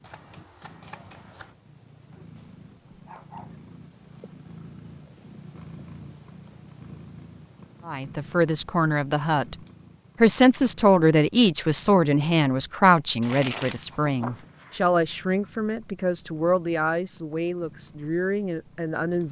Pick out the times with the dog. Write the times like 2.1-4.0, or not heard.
2.4-3.6.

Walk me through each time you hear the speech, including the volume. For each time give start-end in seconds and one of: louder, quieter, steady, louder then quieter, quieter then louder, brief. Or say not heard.
7.8-9.6 brief
10.2-19.2 quieter.